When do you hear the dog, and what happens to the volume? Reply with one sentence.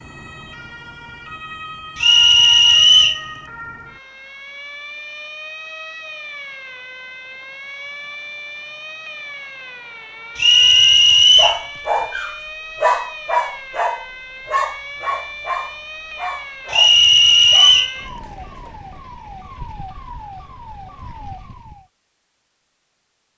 You can hear the dog from 11.3 to 19.0 s, getting quieter.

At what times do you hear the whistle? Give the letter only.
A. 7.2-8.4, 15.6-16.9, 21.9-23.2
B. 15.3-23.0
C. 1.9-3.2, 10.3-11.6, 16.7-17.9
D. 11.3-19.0
C.